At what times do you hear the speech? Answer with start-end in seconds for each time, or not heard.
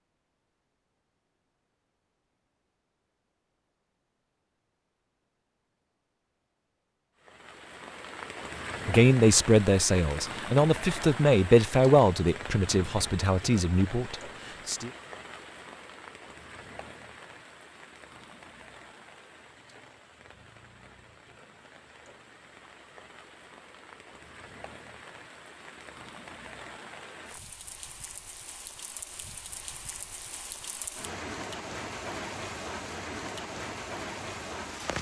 8.8-14.9.